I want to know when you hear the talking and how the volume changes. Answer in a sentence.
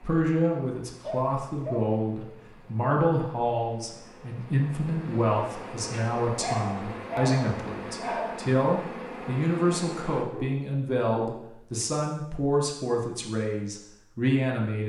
The talking can be heard from 0.0 to 14.8 s, at a steady volume.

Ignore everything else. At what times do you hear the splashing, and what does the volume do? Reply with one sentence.
You can't hear the splashing here.